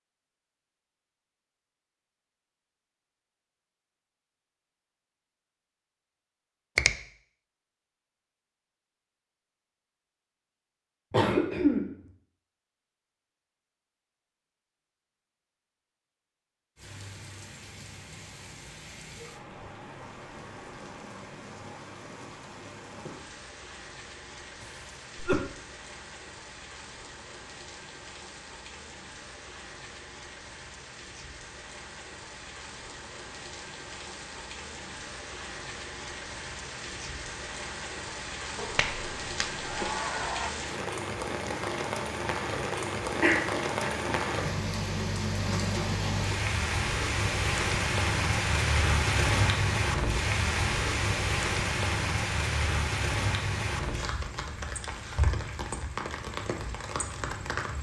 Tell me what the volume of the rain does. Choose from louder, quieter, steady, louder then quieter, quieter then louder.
louder.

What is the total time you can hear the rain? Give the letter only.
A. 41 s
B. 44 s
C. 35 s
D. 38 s
A.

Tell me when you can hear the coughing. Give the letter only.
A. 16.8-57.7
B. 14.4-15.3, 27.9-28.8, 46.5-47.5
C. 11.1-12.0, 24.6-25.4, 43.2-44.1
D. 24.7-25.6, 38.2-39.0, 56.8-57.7
C.